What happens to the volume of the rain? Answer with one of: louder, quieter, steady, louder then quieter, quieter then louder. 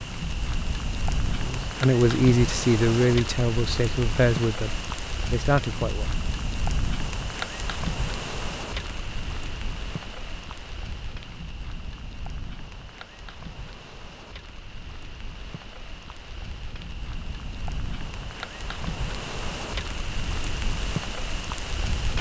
quieter then louder.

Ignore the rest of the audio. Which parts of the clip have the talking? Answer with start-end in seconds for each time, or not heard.
1.4-6.1.